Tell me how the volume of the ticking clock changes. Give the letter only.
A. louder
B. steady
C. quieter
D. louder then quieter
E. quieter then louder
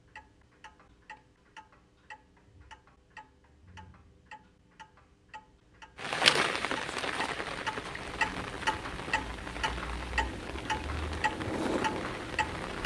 A.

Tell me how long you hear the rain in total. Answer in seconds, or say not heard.
7 s.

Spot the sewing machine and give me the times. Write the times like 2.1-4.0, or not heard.
10.2-12.8.